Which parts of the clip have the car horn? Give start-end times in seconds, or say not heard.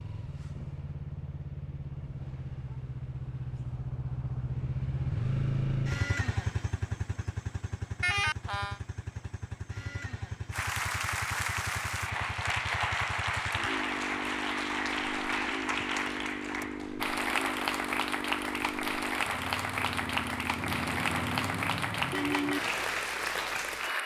8.0-8.8, 20.6-22.6.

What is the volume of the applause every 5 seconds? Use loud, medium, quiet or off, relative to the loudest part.
off, off, loud, loud, loud.